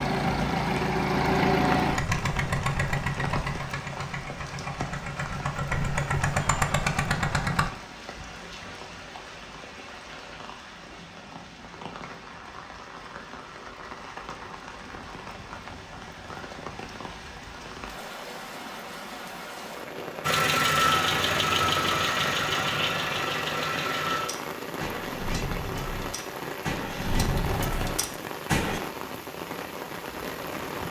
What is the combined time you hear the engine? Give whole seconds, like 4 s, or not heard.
16 s.